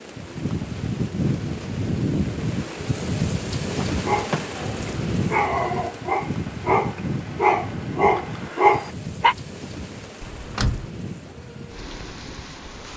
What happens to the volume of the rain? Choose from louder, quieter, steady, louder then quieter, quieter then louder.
quieter.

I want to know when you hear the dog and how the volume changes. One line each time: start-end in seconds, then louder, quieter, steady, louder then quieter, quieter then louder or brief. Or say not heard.
3.9-9.3 louder.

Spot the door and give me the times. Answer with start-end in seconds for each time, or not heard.
3.7-4.7, 10.2-10.9.